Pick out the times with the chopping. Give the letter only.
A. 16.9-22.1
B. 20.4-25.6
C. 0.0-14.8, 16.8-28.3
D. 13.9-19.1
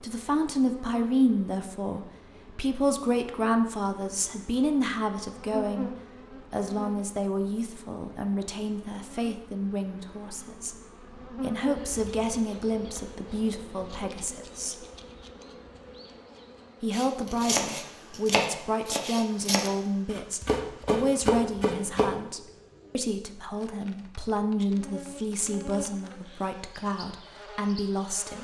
A.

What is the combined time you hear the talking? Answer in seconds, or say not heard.
26 s.